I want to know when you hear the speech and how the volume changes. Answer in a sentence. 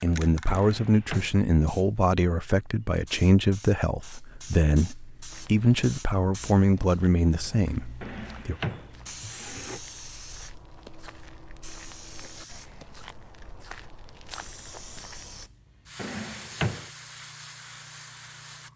The speech can be heard from 0.0 to 8.6 s, at a steady volume.